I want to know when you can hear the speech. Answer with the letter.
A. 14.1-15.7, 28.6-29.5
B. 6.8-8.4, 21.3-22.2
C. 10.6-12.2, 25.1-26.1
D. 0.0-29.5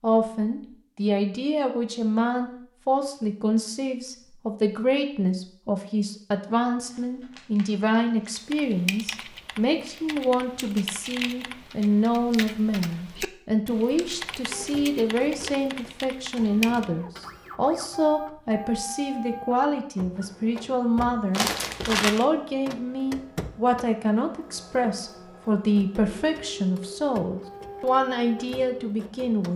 D.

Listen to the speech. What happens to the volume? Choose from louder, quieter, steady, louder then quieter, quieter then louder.
steady.